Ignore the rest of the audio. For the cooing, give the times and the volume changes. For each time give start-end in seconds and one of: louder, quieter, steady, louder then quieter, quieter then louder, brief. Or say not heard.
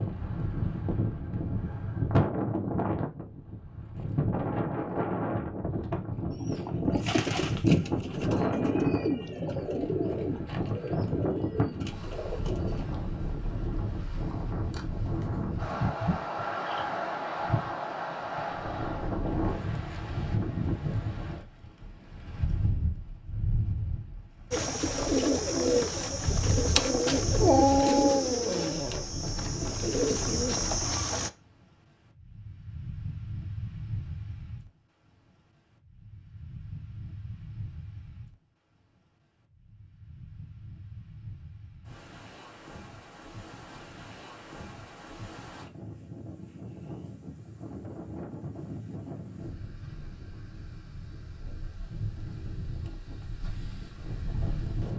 6.3-12.9 quieter
24.5-31.3 quieter then louder.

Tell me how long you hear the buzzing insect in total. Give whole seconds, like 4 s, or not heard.
not heard.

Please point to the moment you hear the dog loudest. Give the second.
28 s.